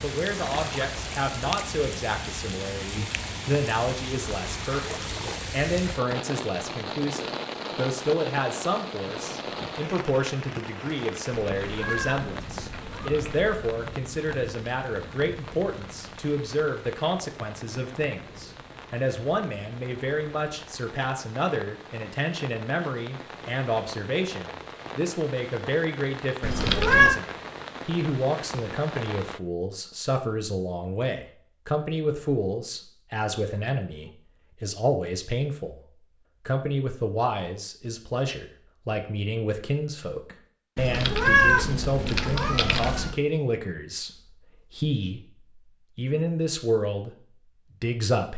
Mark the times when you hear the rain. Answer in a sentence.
The rain can be heard from 0.0 to 29.4 s.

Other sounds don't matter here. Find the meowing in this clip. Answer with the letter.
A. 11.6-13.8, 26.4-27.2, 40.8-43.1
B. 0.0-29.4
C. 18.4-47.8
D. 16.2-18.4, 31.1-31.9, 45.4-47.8
A.